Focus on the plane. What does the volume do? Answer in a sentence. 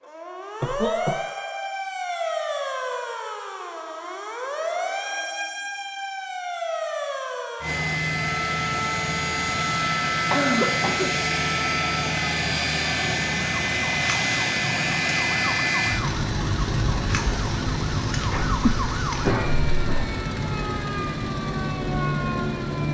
The loudness of the plane goes down.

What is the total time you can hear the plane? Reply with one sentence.
You can hear the plane for 15 seconds altogether.